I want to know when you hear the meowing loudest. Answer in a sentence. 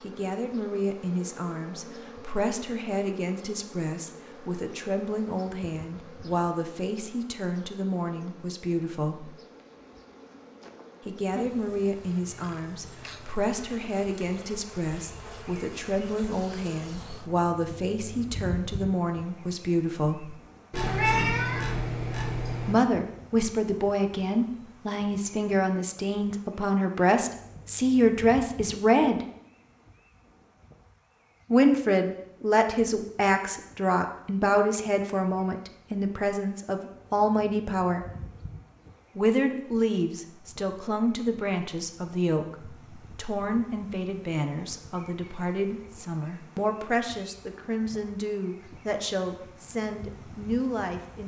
The volume of the meowing peaks at 21 seconds.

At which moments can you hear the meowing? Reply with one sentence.
You can hear the meowing from 20.7 to 22.8 s.